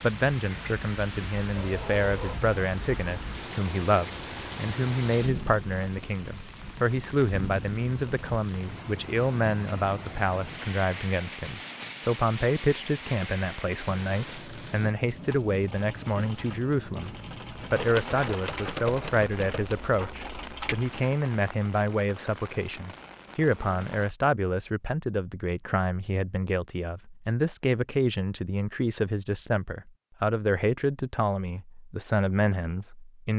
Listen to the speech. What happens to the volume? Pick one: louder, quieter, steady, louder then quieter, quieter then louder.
steady.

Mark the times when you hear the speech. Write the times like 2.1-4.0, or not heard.
0.0-33.3.